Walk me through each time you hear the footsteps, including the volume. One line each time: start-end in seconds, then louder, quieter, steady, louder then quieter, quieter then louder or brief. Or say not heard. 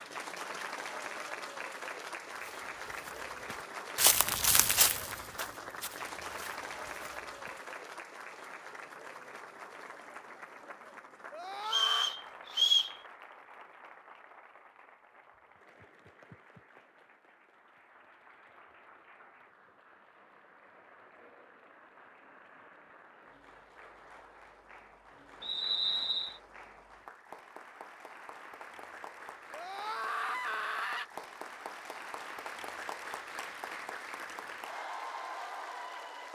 2.4-7.6 louder then quieter.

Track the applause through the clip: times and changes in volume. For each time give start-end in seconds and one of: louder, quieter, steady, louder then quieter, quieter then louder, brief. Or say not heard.
0.0-36.3 quieter then louder.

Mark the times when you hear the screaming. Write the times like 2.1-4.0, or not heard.
11.3-12.1, 29.5-31.1.